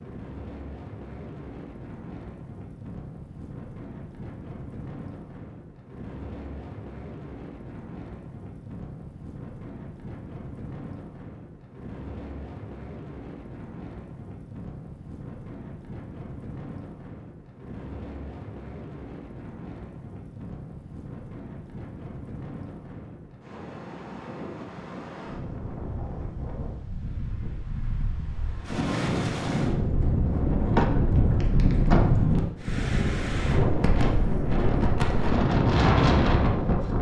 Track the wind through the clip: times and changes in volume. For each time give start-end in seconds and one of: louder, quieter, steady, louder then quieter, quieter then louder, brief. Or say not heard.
0.0-36.9 louder.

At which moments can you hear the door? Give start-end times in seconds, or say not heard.
30.7-32.2.